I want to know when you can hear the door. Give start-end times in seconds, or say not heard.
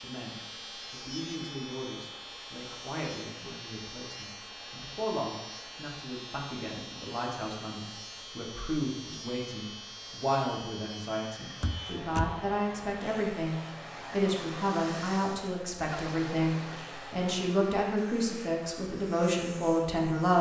11.6-12.4.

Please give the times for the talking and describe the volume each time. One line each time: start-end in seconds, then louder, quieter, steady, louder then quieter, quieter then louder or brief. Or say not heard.
0.0-20.3 louder.